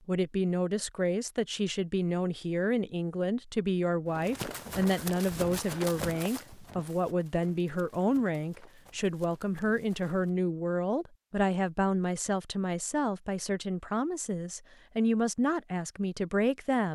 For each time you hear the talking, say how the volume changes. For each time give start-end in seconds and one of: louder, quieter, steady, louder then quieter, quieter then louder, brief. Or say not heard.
0.1-16.9 steady.